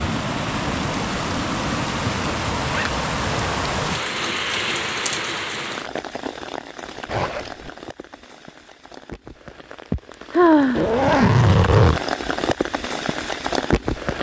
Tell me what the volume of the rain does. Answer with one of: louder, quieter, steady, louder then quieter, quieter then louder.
quieter then louder.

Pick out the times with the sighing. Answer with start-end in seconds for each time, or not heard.
9.9-11.2.